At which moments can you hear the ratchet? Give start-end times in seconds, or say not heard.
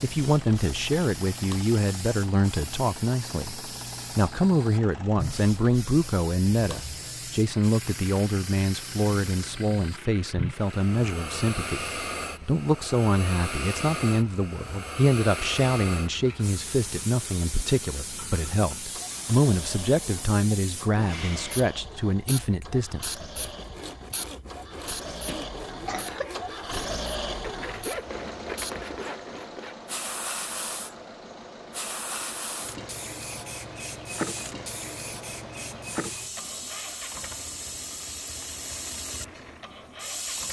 not heard.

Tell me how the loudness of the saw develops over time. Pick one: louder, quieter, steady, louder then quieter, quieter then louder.
louder.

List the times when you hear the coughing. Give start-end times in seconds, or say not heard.
25.2-26.6.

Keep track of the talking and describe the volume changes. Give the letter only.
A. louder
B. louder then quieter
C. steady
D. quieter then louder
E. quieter
C.